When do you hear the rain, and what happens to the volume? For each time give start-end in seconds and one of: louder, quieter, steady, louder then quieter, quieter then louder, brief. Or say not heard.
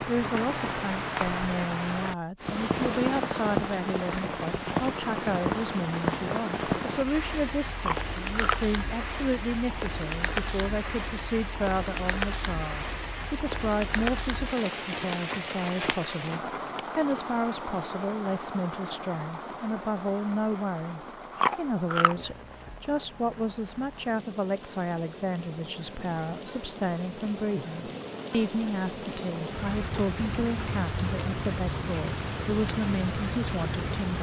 0.0-34.1 quieter then louder.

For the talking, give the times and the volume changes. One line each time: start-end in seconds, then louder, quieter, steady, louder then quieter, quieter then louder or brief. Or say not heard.
0.0-34.1 steady.